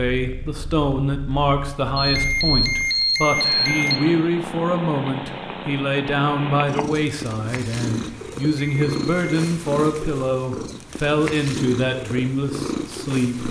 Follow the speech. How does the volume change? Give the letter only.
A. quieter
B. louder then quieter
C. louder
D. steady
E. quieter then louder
D.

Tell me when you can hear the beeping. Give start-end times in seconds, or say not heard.
1.9-4.0, 8.5-9.5.